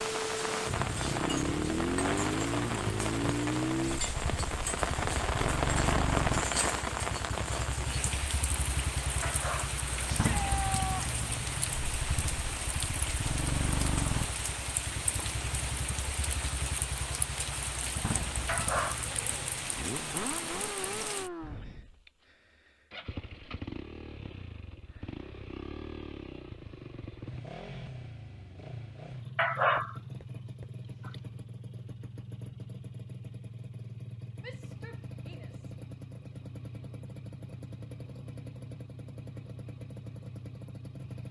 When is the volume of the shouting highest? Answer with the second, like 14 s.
11 s.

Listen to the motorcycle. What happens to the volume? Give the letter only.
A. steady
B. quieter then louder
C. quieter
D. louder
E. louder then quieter
C.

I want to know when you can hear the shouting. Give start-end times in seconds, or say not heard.
10.1-11.1, 34.4-35.8.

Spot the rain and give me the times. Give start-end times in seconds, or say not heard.
0.0-21.3.